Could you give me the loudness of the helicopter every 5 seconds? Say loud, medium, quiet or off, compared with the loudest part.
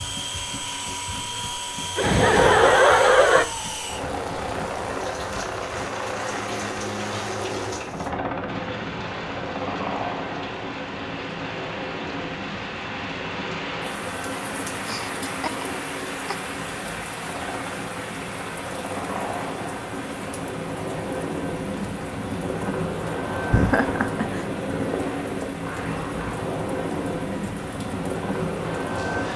loud, loud, medium, medium, loud, loud.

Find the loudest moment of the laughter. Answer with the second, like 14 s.
3 s.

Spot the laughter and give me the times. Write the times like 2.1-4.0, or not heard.
1.9-3.5, 14.8-16.4, 23.5-24.4.